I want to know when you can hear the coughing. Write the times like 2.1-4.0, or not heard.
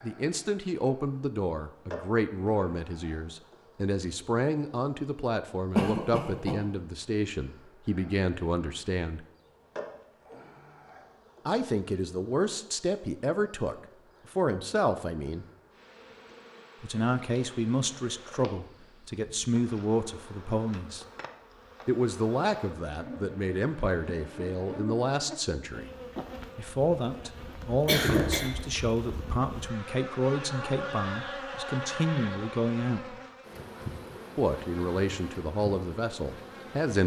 5.7-6.5, 27.9-28.5.